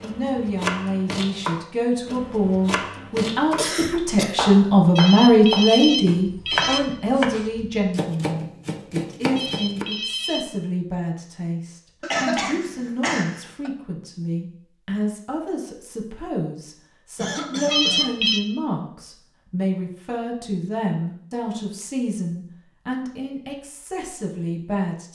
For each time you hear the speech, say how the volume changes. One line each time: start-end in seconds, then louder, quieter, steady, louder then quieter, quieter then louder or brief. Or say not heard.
0.0-25.0 quieter.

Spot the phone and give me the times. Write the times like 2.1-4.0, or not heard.
5.0-6.8, 9.3-10.4, 17.7-18.4.